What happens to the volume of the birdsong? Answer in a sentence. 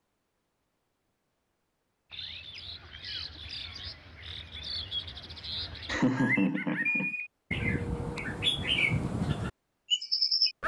The loudness of the birdsong goes up.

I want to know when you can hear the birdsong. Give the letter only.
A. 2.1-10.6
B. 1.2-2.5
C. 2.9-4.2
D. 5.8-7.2
A.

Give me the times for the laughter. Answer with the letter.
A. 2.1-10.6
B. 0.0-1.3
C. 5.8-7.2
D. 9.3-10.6
C.